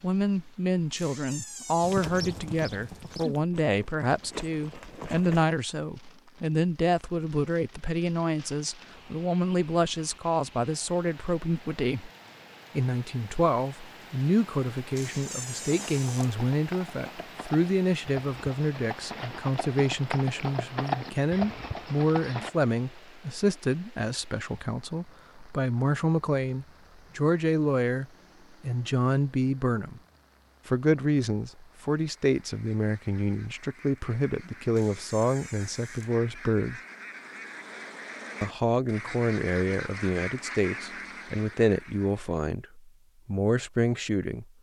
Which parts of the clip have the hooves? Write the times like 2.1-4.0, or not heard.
1.8-5.5, 15.6-22.5.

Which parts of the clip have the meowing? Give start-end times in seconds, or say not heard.
not heard.